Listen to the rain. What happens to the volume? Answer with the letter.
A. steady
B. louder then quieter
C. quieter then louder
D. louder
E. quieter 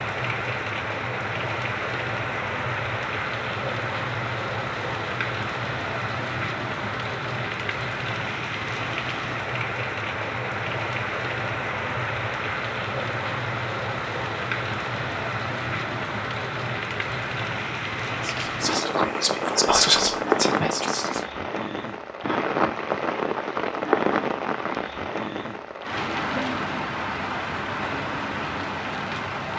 A.